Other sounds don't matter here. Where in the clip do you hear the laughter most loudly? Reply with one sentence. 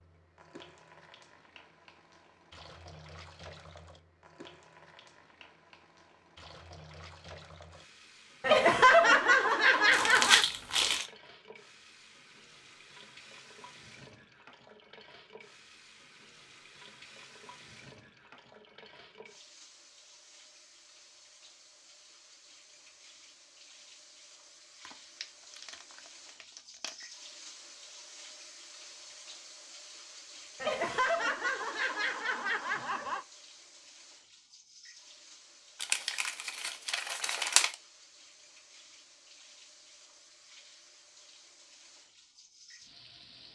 The volume of the laughter peaks at 9 seconds.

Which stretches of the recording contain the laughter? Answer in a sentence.
The laughter can be heard from 8.4 to 10.4 s and from 30.6 to 33.2 s.